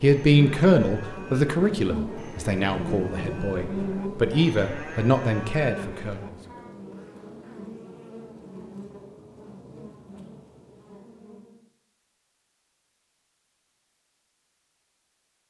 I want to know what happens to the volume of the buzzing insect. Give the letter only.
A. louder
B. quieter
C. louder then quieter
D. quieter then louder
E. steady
B.